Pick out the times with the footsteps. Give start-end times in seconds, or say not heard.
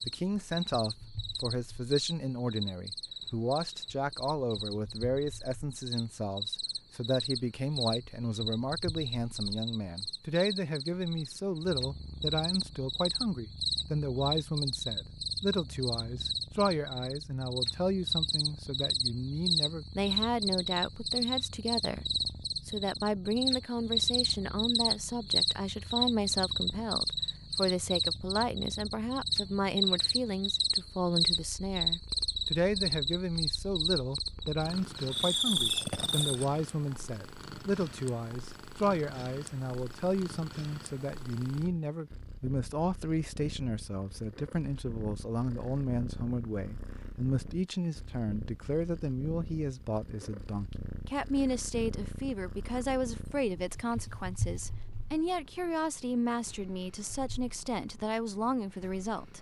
not heard.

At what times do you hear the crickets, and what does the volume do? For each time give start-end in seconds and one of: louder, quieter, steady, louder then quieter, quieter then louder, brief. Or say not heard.
0.0-36.5 louder.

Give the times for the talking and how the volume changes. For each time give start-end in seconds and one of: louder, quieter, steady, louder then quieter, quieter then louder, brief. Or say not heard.
0.1-22.1 steady
22.6-59.3 steady.